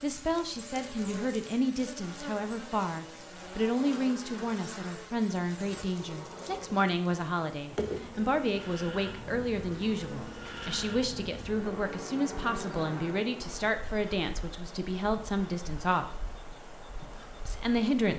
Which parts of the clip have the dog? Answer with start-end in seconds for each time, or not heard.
not heard.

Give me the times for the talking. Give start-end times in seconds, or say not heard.
0.0-16.1, 17.4-18.1.